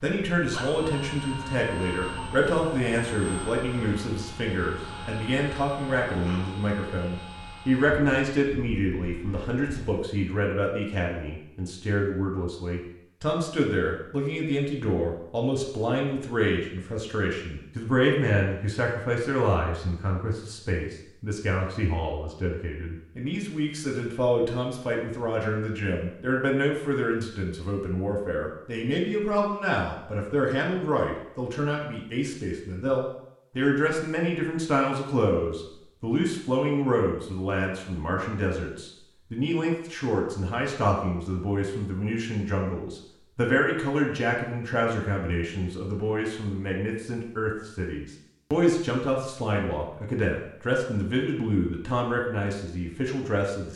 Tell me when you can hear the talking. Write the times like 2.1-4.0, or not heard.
0.0-53.7.